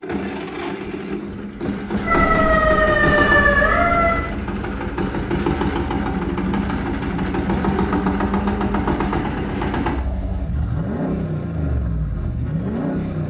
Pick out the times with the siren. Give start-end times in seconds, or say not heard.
2.0-4.2.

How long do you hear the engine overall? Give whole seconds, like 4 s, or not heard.
13 s.